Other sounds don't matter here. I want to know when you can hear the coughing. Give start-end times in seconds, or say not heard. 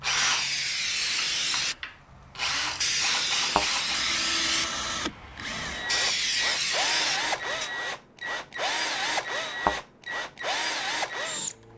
not heard.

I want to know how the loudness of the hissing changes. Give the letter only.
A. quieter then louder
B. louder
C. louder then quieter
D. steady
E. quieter
A.